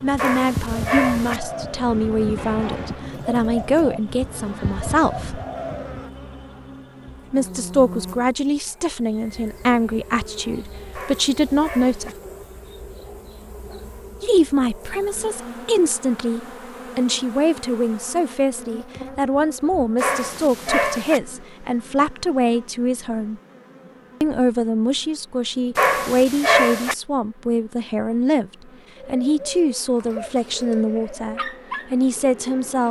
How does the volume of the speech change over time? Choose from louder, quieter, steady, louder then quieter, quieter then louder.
steady.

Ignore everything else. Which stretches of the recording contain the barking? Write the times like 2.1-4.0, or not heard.
0.1-1.4, 10.9-12.2, 19.9-21.2, 25.8-26.9.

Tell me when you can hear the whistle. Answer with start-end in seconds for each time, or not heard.
not heard.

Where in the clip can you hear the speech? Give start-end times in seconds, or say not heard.
0.0-5.4, 7.3-12.1, 14.2-23.4, 24.2-32.8.